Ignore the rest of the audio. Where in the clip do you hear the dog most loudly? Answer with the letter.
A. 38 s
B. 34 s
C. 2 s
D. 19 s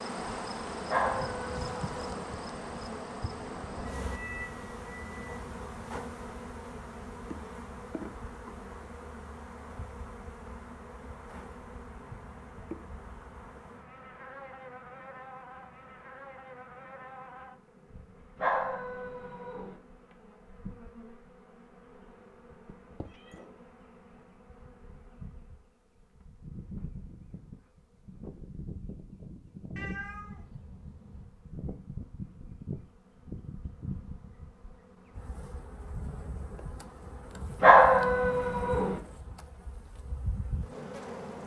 A.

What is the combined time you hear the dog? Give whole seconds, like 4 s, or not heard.
4 s.